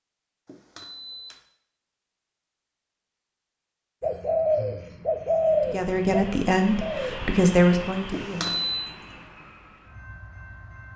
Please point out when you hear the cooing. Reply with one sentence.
You can hear the cooing from 4.0 to 7.3 s.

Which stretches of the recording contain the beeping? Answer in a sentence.
The beeping can be heard from 0.5 to 1.4 s and from 8.1 to 8.9 s.